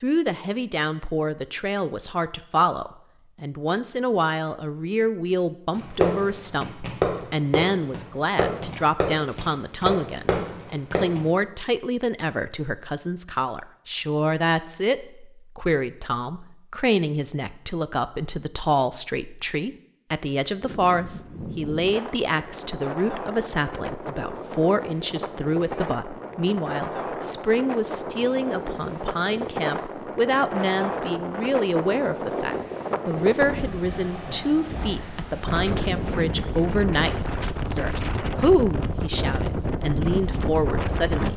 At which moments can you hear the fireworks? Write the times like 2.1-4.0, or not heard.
5.8-11.2.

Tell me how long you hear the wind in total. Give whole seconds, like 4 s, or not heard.
21 s.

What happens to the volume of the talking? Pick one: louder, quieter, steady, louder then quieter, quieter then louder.
steady.